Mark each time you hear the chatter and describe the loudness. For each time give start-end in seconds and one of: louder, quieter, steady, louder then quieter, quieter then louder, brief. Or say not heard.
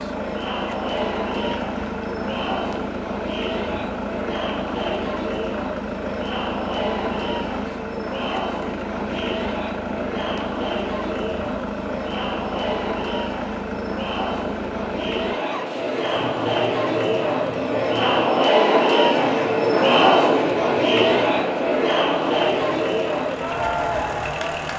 0.0-24.7 louder.